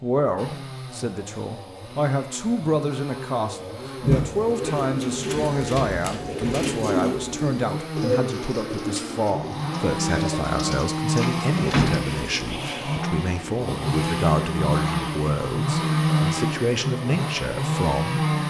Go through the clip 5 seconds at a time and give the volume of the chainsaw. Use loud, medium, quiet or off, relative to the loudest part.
quiet, medium, loud, loud.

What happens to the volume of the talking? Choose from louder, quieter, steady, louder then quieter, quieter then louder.
steady.